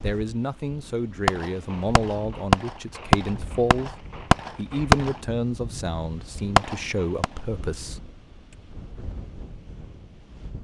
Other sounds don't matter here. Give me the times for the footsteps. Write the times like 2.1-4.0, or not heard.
not heard.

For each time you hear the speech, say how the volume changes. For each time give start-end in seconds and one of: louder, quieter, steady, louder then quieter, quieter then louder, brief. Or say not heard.
0.0-8.1 steady.